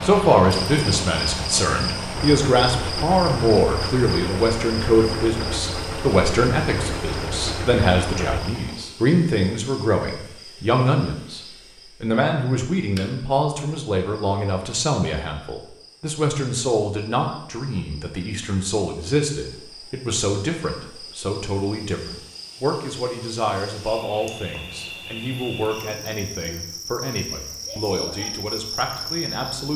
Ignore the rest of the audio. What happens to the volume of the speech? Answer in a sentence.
The volume of the speech goes down.